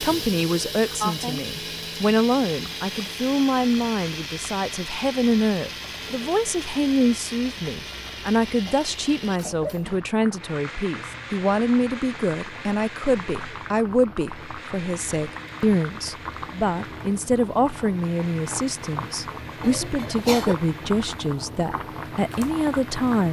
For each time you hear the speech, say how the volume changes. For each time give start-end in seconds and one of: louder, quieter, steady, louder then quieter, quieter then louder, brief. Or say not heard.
0.0-23.2 steady.